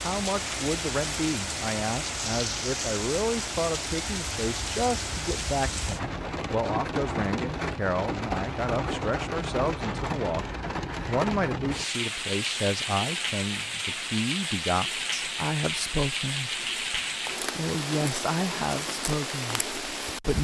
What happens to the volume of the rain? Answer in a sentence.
The loudness of the rain stays about the same.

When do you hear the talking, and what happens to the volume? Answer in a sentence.
You can hear the talking from 0.0 to 10.4 s, at a steady volume; and from 11.1 to 20.4 s, at a steady volume.